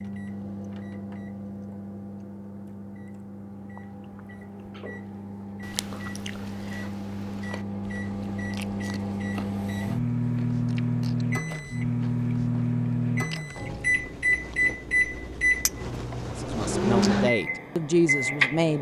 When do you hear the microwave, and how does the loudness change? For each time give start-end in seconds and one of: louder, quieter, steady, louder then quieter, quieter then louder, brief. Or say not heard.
0.0-18.7 louder.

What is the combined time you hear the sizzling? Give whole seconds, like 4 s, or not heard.
not heard.